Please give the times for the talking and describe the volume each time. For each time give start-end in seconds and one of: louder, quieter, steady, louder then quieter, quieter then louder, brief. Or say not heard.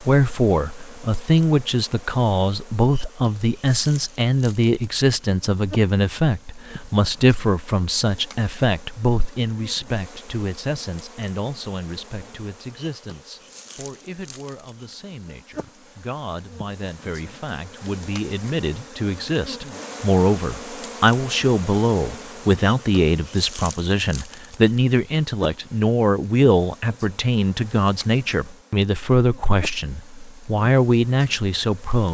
0.0-32.0 quieter then louder.